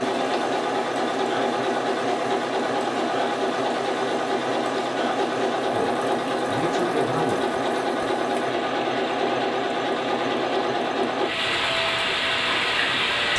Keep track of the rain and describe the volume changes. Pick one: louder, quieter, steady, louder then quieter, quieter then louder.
louder.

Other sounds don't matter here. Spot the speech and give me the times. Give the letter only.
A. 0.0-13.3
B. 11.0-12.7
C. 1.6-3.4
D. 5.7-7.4
D.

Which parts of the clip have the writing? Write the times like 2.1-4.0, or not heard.
not heard.